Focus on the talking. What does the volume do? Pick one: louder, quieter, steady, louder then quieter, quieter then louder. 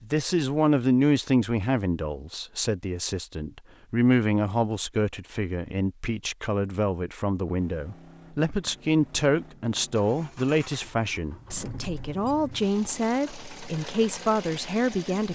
steady.